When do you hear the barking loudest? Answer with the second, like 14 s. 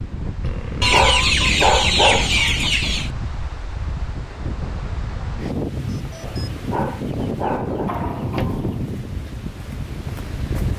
2 s.